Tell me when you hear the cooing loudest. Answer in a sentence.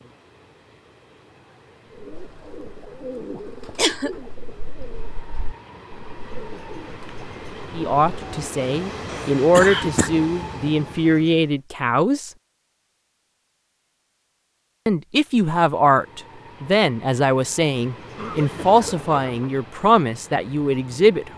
The loudest moment of the cooing is at 3 seconds.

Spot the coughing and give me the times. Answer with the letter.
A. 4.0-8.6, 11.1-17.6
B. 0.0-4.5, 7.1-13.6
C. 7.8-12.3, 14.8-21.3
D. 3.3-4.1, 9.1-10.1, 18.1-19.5
D.